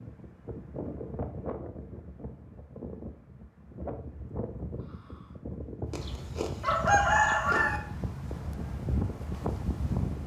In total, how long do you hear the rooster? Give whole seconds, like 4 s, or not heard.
2 s.